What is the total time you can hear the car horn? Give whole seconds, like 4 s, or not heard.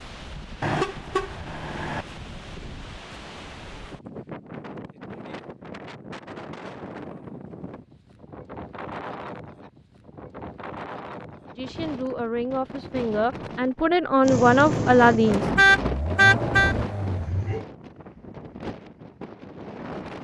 3 s.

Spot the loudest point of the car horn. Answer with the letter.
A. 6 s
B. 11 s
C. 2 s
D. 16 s
D.